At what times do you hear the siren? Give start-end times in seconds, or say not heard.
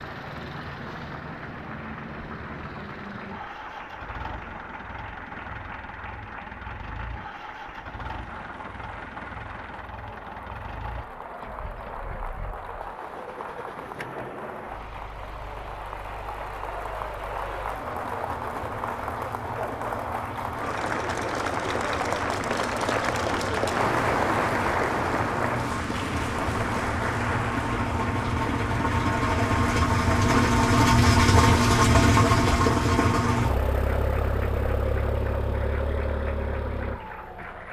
not heard.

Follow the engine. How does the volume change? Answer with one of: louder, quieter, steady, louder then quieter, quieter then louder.
louder.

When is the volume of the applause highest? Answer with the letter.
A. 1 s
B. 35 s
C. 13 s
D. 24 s
D.